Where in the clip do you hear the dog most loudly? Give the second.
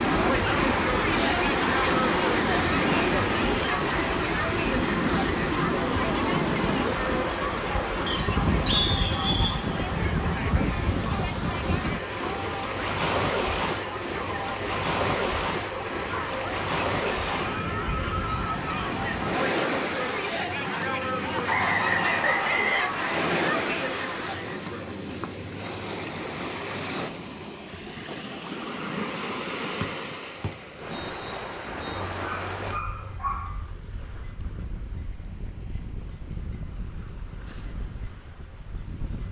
33 s.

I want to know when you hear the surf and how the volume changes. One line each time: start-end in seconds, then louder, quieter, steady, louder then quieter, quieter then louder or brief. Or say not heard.
0.0-39.2 quieter.